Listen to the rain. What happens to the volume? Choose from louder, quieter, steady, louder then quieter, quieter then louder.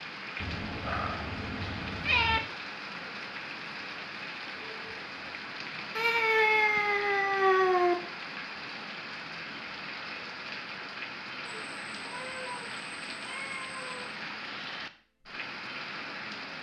steady.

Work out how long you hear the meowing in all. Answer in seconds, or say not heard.
7 s.